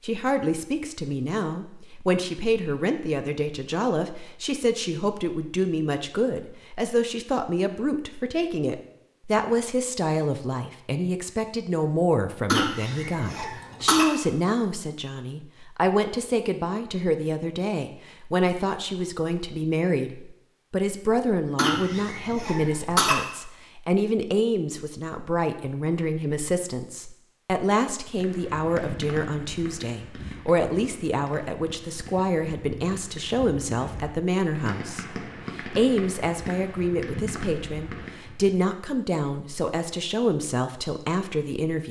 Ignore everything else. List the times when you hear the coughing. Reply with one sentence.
You can hear the coughing from 12.4 to 14.1 s and from 21.6 to 23.1 s.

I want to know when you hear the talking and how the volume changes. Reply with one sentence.
The talking can be heard from 0.0 to 41.8 s, at a steady volume.